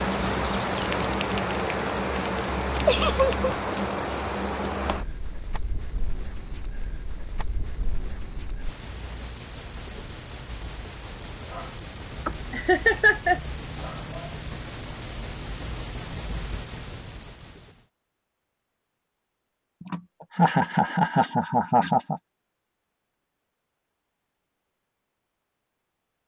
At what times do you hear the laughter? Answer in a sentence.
The laughter can be heard from 2.9 to 3.3 s, from 12.2 to 13.4 s and from 19.8 to 22.2 s.